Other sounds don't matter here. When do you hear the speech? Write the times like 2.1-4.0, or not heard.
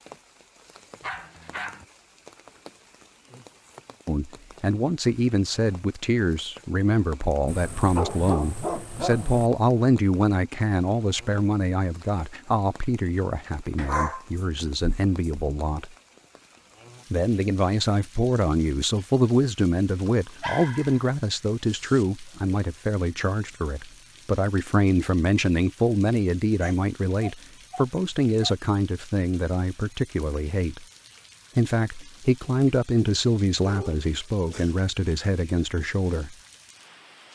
4.0-15.9, 17.1-30.9, 31.6-36.4.